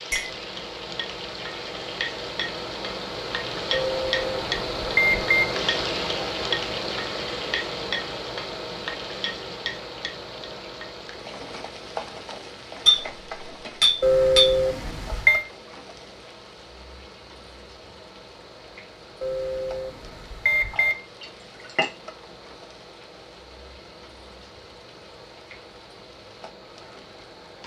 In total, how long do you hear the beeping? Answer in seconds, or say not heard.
5 s.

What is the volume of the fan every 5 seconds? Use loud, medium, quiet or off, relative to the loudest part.
loud, loud, medium, quiet, quiet, quiet.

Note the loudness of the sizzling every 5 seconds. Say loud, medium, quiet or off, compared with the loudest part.
loud, loud, medium, quiet, quiet, quiet.